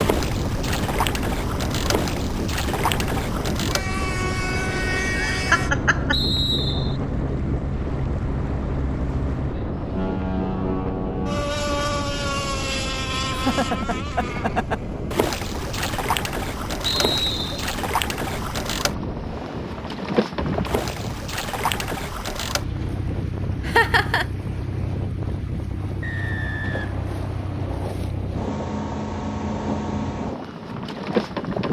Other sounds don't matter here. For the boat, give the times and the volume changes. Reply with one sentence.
You can hear the boat from 0.0 to 31.6 s, at a steady volume.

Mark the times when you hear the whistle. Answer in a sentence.
You can hear the whistle from 6.1 to 7.0 s, from 16.9 to 17.6 s and from 26.0 to 27.8 s.